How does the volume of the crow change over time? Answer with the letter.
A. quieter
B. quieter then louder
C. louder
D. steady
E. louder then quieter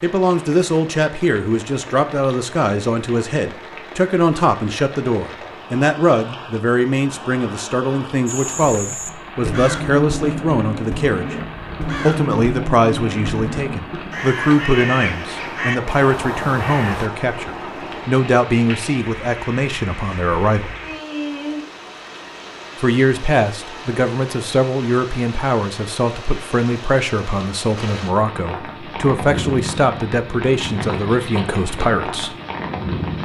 D.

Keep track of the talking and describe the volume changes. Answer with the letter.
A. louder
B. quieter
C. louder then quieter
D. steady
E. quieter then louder
D.